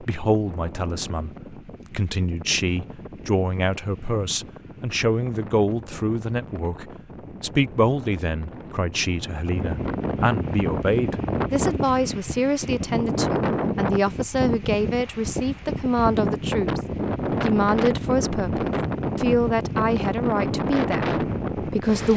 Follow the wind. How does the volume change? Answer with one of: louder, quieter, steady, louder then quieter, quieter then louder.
louder.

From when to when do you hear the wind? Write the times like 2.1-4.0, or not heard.
0.0-22.1.